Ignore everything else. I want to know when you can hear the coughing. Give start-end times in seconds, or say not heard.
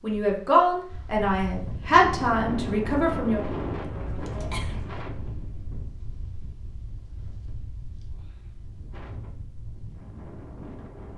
4.2-4.8.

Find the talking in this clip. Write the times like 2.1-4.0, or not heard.
0.0-3.4.